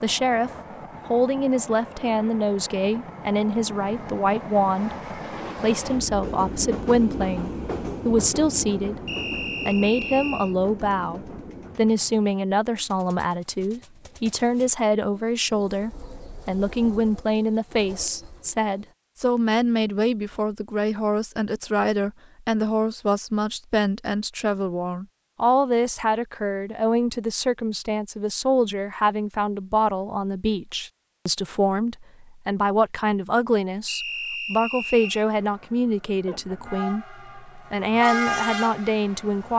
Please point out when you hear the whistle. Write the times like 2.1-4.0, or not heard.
9.1-10.6, 33.9-35.2.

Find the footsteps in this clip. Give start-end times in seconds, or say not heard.
not heard.